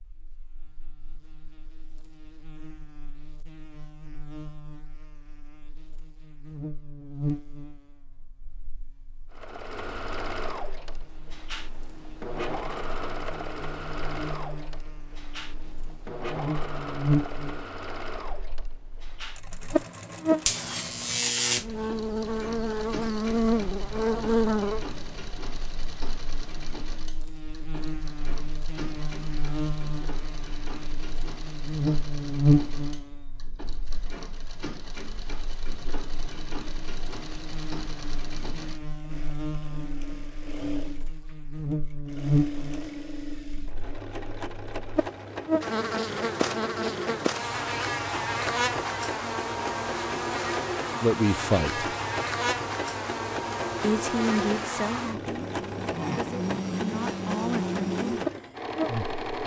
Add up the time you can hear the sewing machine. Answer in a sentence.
You can hear the sewing machine for 50 seconds altogether.